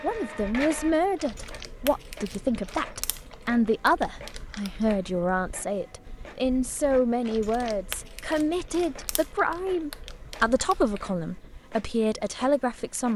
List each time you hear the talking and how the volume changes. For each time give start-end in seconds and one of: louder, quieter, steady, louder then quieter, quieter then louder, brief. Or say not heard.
0.0-13.1 steady.